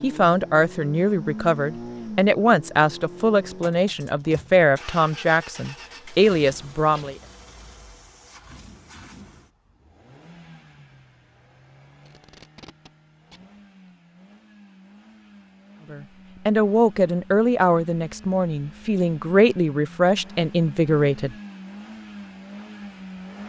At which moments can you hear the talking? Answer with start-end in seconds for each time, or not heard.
0.0-7.2, 15.9-21.4.